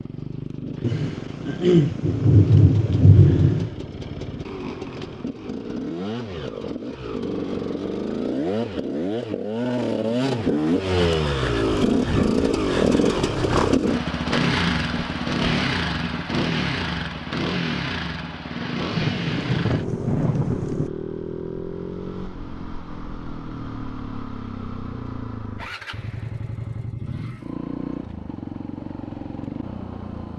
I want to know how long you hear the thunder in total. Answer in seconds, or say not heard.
5 s.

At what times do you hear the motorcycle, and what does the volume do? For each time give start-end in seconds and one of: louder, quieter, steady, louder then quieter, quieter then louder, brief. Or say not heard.
0.0-30.3 louder then quieter.